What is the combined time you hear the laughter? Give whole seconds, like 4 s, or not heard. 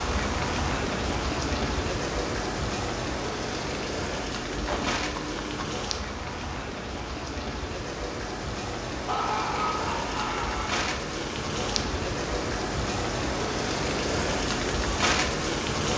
3 s.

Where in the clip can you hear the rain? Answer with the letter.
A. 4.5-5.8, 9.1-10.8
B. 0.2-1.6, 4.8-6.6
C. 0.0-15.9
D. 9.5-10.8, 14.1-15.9
C.